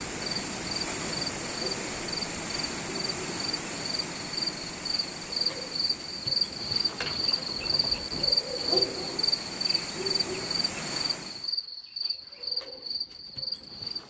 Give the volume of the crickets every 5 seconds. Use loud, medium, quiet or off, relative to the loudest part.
medium, loud, medium.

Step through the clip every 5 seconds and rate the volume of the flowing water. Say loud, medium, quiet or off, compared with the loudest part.
loud, medium, loud.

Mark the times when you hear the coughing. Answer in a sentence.
You can't hear the coughing here.